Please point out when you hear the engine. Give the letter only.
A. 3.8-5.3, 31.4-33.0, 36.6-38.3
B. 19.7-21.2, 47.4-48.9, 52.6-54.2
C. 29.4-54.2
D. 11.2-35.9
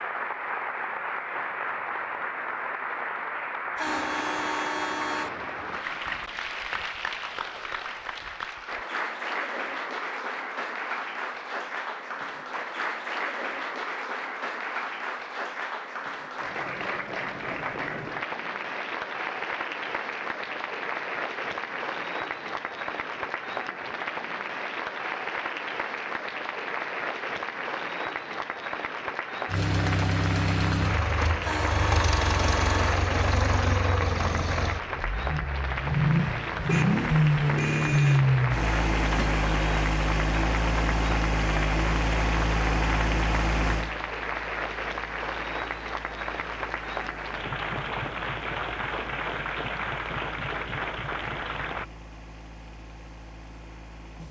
C.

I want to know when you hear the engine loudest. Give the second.
38 s.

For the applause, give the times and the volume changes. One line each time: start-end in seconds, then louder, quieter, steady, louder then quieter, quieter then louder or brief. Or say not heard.
0.0-51.9 steady.